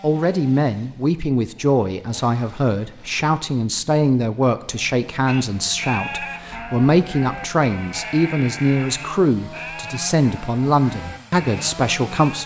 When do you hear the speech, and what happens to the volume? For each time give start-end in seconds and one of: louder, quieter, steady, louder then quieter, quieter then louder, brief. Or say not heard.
0.0-12.4 steady.